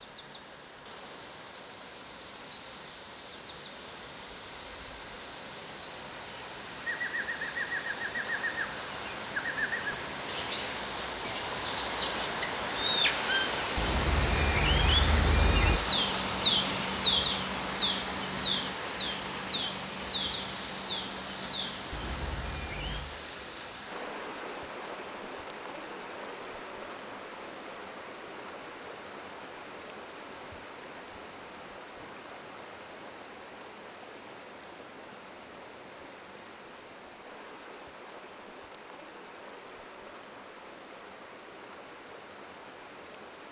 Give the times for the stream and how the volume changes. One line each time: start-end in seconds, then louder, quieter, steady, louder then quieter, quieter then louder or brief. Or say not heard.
0.0-43.4 louder then quieter.